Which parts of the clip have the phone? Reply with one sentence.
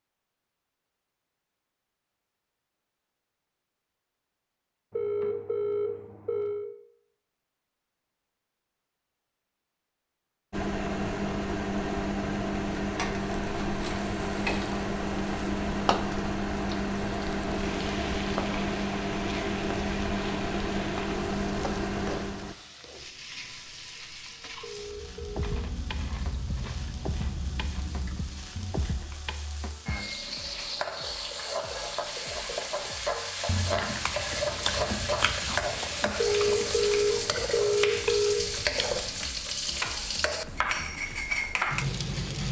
The phone can be heard from 4.9 to 6.7 s, from 24.6 to 25.6 s and from 36.1 to 38.4 s.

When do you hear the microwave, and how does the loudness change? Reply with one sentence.
The microwave can be heard from 10.5 to 22.6 s, at a steady volume.